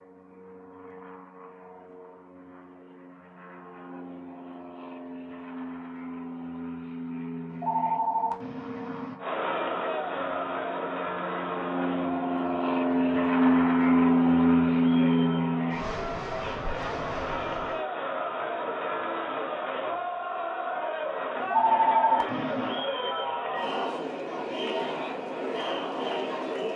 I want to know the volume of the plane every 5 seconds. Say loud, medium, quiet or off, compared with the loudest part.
quiet, quiet, loud, medium, off, off.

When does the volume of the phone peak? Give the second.
22 s.